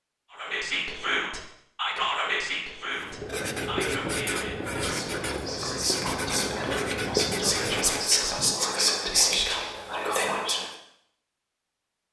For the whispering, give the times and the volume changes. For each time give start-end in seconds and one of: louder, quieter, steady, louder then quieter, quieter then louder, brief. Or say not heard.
0.3-10.7 quieter then louder.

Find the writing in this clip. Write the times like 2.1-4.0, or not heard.
2.9-8.6.